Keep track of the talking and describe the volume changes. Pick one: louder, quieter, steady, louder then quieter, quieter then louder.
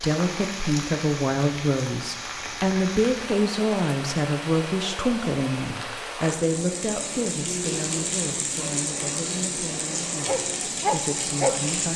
quieter.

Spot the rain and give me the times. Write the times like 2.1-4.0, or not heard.
0.0-11.9.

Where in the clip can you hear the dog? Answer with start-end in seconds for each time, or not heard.
10.2-11.7.